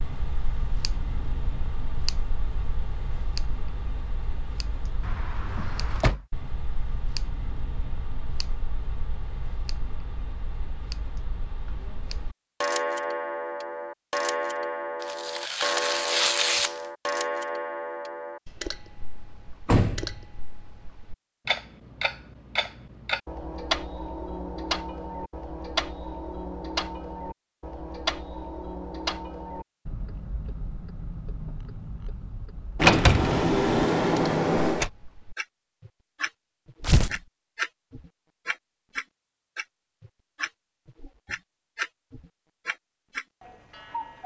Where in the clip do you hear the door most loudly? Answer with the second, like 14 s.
33 s.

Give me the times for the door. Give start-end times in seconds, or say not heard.
5.0-6.2, 19.6-20.2, 32.8-34.9.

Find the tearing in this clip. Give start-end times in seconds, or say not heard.
15.0-16.8, 36.8-37.2.